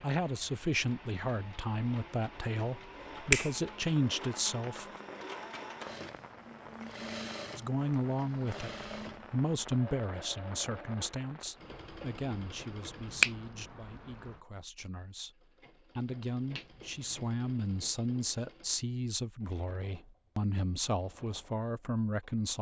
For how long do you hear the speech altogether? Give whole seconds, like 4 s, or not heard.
20 s.